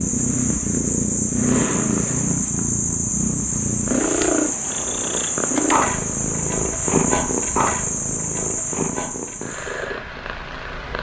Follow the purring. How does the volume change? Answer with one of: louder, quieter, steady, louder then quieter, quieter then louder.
quieter.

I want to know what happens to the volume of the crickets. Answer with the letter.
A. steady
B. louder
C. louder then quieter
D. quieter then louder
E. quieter
A.